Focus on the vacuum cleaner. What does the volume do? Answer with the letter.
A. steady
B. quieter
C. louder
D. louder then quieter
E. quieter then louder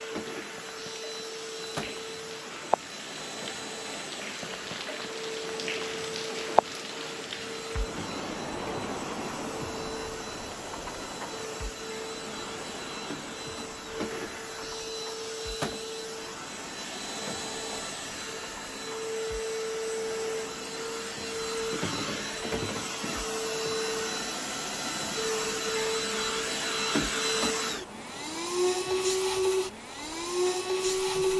C.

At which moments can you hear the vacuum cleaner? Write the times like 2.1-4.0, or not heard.
0.0-31.3.